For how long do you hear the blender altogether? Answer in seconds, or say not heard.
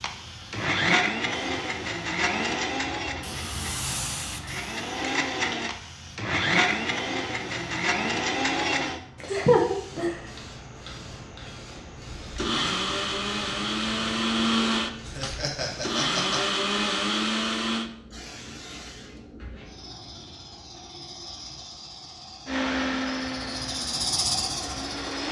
17 s.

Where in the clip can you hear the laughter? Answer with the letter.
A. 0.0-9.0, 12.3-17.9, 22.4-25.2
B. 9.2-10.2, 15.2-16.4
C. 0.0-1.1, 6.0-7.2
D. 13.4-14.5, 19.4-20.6
B.